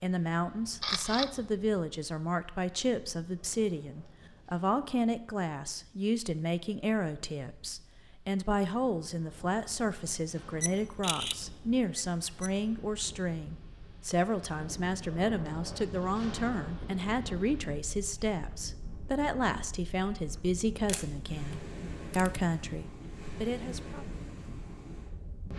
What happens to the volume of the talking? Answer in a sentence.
The volume of the talking stays about the same.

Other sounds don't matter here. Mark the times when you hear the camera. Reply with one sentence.
You can hear the camera from 0.6 to 1.4 s, from 10.6 to 12.5 s and from 20.9 to 22.4 s.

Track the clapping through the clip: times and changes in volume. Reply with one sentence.
You can't hear the clapping here.